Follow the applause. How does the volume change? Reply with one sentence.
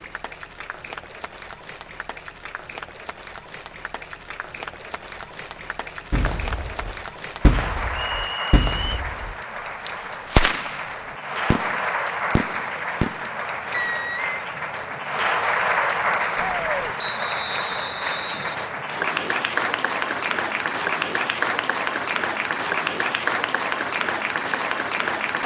The volume of the applause goes up.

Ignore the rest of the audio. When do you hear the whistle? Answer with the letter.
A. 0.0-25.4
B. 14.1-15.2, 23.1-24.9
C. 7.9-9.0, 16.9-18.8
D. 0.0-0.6
C.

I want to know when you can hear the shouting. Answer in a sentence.
The shouting can be heard from 16.4 to 16.9 s.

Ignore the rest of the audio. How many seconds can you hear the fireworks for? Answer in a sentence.
The fireworks can be heard for 9 seconds in total.